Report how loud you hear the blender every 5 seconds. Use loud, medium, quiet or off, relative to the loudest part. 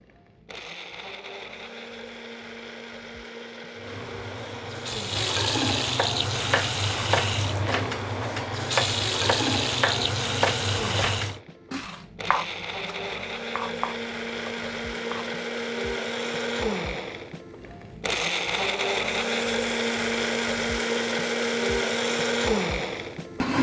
quiet, quiet, medium, loud, loud.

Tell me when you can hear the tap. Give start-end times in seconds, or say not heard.
3.8-11.4.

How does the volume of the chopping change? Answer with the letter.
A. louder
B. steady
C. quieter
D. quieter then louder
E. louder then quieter
C.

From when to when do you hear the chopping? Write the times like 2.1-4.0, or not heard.
6.0-15.4.